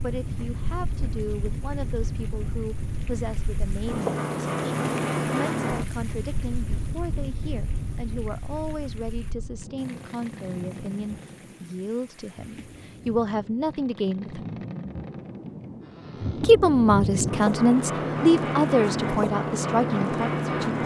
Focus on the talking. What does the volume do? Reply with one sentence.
The loudness of the talking goes up.